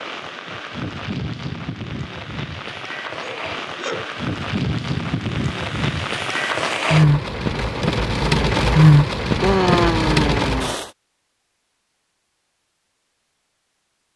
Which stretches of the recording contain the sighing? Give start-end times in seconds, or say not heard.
3.2-4.1, 9.4-10.8.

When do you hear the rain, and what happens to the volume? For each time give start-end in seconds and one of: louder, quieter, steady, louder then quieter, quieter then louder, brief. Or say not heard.
0.0-10.9 louder.